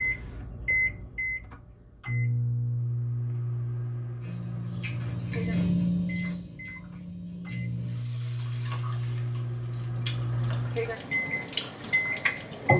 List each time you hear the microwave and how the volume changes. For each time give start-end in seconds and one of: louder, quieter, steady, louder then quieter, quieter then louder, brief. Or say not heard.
0.0-12.7 quieter then louder.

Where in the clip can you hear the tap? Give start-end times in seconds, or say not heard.
7.7-12.7.